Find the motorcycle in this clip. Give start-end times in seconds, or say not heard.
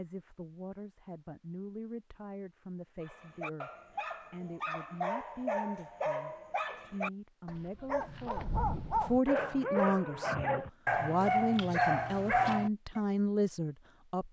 not heard.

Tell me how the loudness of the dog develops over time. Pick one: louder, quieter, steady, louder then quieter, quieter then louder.
louder.